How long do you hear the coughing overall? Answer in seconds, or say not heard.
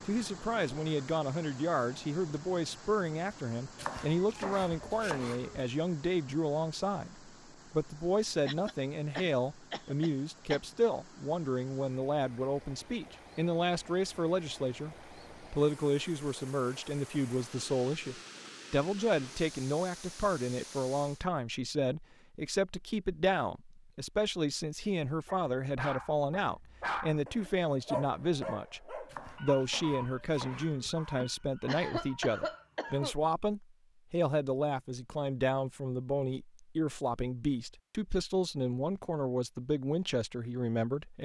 4 s.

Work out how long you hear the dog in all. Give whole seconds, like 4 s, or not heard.
8 s.